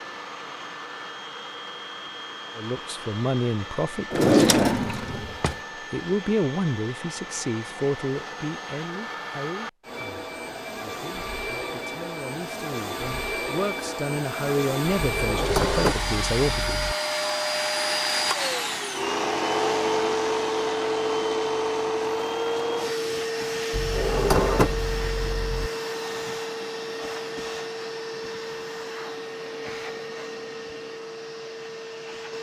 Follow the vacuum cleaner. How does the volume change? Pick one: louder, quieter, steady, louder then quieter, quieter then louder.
louder then quieter.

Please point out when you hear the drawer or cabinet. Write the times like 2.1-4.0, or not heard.
4.1-5.5, 14.9-16.9, 23.7-25.7.